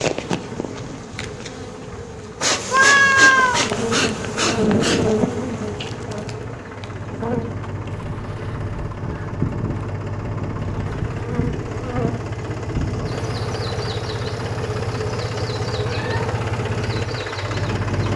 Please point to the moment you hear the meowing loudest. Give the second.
3 s.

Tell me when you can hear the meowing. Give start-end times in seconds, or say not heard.
2.7-3.6, 15.8-16.2.